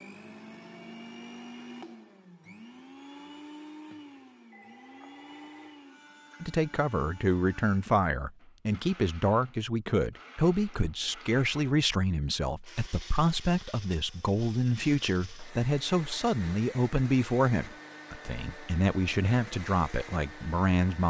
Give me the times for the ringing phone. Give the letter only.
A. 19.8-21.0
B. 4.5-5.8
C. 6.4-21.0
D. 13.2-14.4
B.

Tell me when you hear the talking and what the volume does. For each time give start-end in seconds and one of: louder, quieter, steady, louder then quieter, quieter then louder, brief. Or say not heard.
6.4-21.0 steady.